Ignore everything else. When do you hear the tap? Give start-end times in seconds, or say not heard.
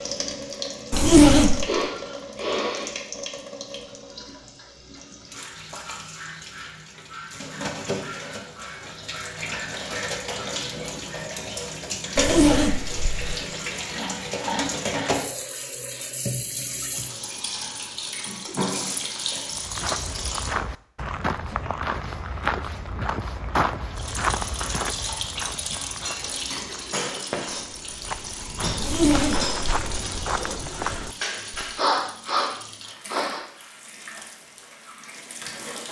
0.0-20.6, 23.9-35.8.